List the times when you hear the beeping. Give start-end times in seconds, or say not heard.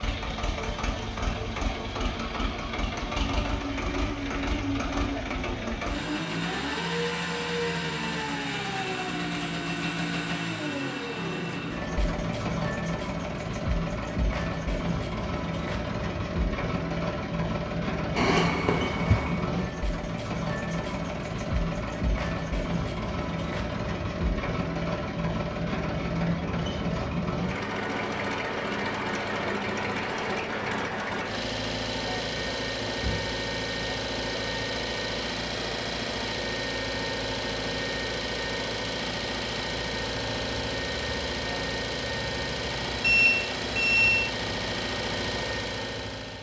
18.1-19.4, 43.0-44.3.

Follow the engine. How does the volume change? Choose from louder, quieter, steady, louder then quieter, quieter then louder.
steady.